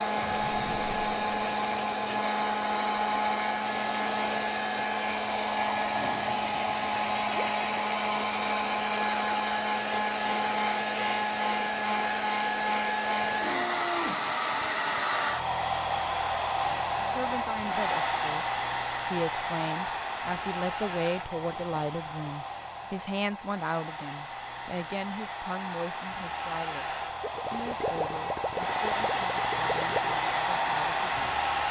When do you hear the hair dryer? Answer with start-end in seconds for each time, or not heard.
0.0-31.6.